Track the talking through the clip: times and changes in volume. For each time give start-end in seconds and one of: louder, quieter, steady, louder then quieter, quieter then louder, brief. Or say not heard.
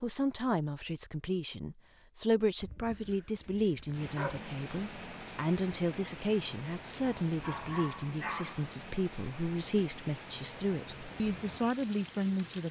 0.0-12.6 steady.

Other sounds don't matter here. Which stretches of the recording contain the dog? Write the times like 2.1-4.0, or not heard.
2.6-4.4, 7.2-8.7.